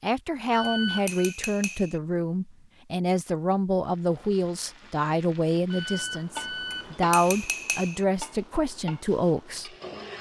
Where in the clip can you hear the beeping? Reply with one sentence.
You can hear the beeping from 0.5 to 1.4 s and from 5.7 to 7.0 s.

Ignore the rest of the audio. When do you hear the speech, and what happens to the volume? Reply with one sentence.
You can hear the speech from 0.0 to 9.7 s, at a steady volume.